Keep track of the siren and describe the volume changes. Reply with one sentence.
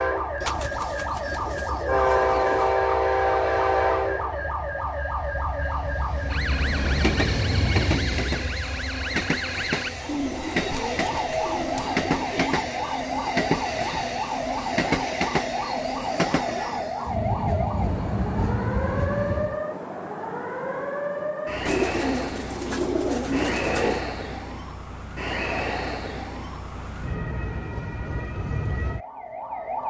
The loudness of the siren stays about the same.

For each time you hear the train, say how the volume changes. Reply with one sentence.
The train can be heard from 0.0 to 19.6 s, getting quieter.